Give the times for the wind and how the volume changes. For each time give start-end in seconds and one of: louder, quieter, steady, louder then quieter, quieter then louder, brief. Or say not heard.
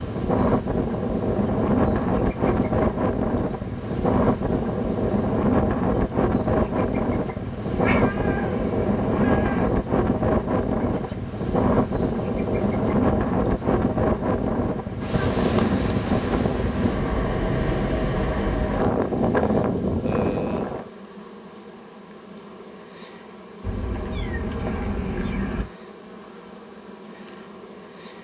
0.0-20.9 steady.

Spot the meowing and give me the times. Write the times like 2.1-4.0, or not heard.
7.7-9.7, 23.6-25.6.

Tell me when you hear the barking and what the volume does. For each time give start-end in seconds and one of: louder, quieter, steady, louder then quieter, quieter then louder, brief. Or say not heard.
not heard.